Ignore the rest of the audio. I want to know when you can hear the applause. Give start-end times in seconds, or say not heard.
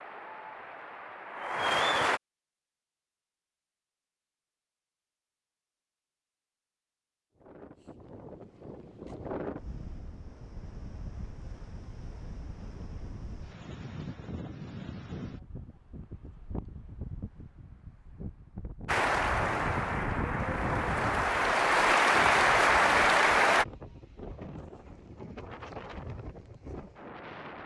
0.0-2.2, 18.9-23.6.